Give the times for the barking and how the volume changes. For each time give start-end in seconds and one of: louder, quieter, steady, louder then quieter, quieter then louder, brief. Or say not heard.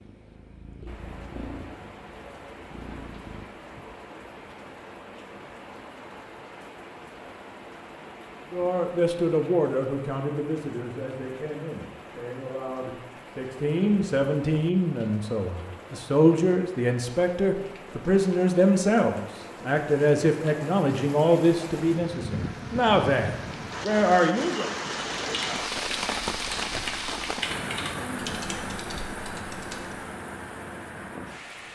not heard.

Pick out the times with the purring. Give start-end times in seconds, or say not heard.
0.0-3.5.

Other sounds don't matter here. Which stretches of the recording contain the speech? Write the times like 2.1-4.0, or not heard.
8.5-24.7.